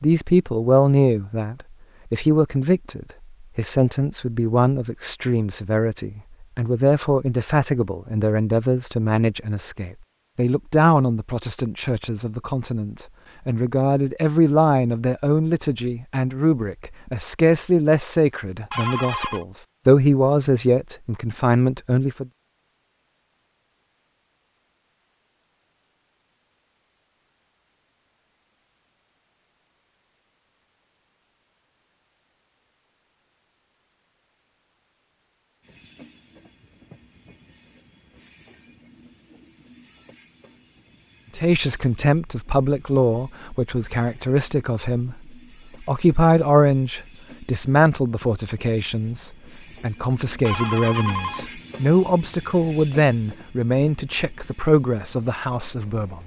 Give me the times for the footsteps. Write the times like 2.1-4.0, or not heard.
not heard.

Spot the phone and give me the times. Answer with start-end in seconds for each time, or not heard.
18.7-19.4, 50.5-51.5.